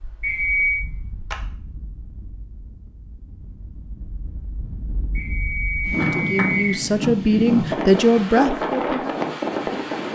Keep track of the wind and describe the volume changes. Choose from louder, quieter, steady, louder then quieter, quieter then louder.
louder.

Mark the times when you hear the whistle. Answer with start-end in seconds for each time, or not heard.
0.2-0.8, 5.2-6.8.